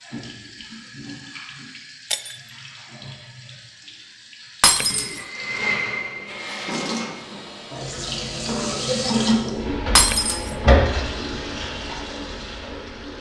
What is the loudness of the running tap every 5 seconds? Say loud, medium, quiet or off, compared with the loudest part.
quiet, loud, loud.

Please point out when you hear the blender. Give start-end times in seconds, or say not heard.
4.8-6.9.